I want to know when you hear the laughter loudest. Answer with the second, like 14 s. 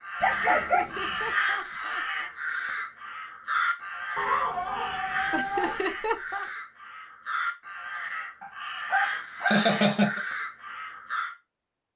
10 s.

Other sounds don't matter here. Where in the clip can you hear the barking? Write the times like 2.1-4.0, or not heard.
0.2-1.3, 4.2-5.8, 8.4-9.7.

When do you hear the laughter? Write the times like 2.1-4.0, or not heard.
0.6-2.3, 5.3-6.5, 9.1-10.2.